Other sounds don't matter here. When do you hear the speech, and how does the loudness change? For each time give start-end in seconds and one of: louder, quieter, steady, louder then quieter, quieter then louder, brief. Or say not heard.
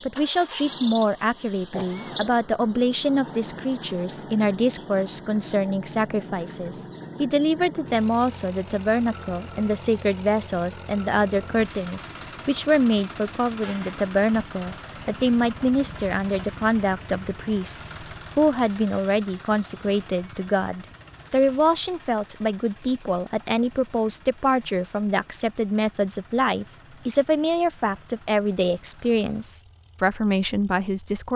0.0-31.3 steady.